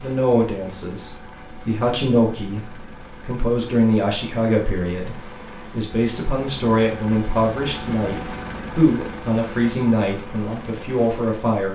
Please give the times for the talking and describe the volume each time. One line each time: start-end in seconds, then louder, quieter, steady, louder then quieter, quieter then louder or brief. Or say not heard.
0.0-11.6 steady.